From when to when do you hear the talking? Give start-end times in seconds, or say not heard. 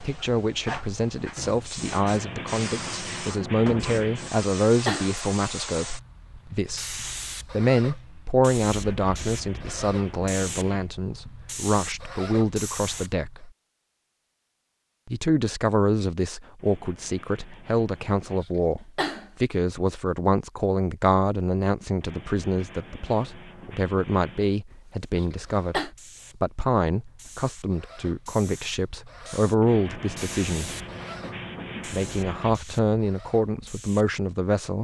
0.0-13.5, 15.1-30.7, 31.9-34.7.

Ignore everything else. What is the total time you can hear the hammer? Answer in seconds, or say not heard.
not heard.